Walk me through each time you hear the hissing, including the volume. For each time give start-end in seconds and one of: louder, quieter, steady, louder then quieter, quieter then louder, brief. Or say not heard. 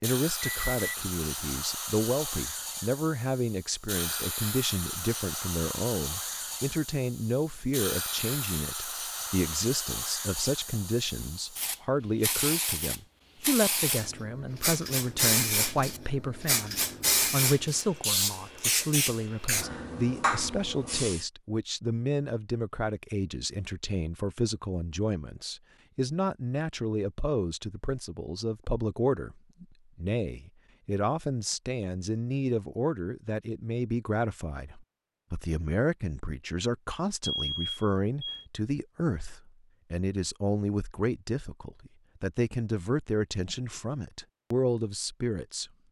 0.0-21.2 louder.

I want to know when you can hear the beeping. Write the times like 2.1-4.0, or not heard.
0.4-0.9, 37.2-38.5.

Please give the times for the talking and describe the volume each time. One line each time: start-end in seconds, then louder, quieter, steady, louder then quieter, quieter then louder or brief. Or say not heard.
0.0-45.7 steady.